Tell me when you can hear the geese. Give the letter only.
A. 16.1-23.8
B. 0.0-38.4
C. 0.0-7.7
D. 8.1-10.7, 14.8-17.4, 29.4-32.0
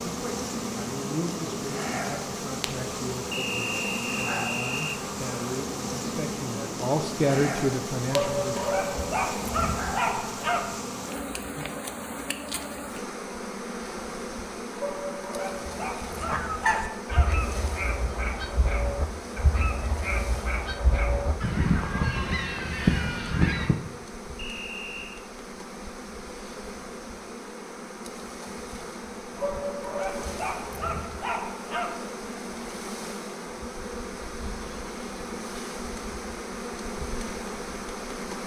A.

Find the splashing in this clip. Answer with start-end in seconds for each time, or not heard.
not heard.